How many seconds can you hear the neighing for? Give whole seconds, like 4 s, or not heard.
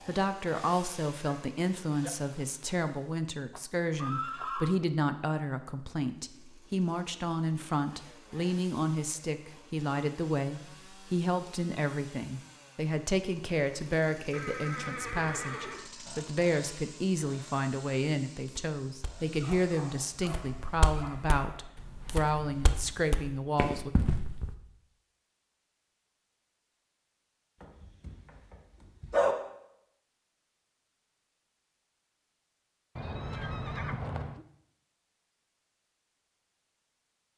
4 s.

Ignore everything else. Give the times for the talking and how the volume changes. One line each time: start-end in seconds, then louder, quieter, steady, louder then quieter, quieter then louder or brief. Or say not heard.
0.1-23.9 steady.